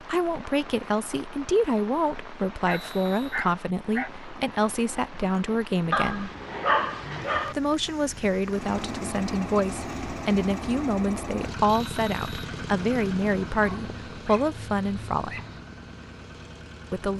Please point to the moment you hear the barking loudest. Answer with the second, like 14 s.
7 s.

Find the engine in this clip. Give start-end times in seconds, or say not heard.
8.4-17.1.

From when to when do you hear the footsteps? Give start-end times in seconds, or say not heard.
not heard.